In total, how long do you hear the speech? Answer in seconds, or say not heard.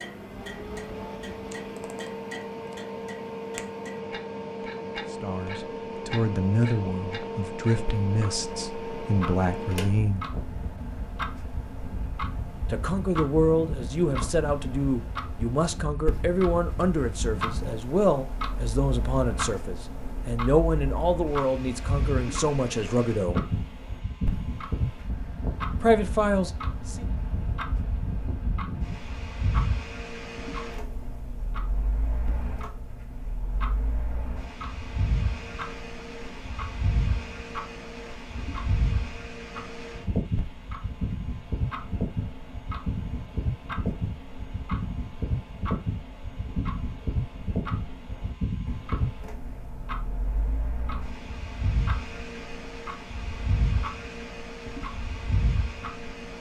17 s.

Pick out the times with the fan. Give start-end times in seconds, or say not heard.
0.0-56.3.